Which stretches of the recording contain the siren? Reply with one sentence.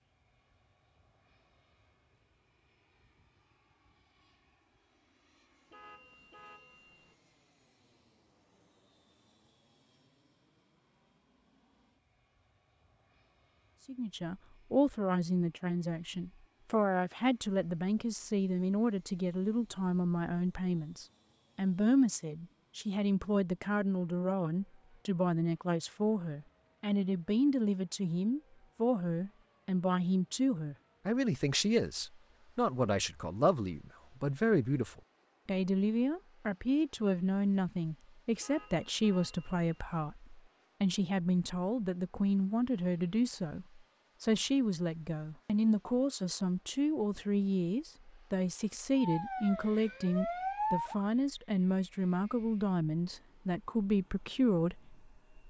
You can hear the siren from 49.0 to 51.0 s.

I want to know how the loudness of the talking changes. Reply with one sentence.
The volume of the talking stays about the same.